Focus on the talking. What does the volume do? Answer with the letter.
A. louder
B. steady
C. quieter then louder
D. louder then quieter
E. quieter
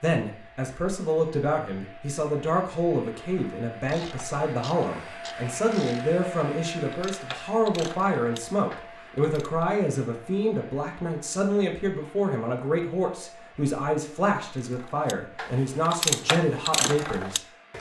B.